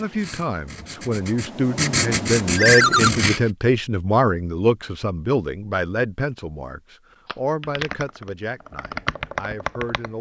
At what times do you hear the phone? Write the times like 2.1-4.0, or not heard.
2.5-3.1, 7.2-7.8.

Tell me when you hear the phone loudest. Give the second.
3 s.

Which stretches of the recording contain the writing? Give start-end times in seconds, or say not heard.
0.0-3.5.